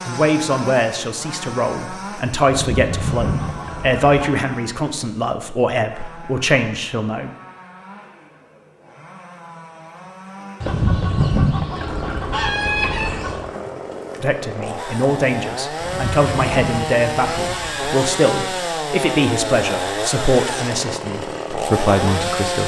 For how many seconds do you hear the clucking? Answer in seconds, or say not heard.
7 s.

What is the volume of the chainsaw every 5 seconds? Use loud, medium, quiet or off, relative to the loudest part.
medium, quiet, medium, loud, loud.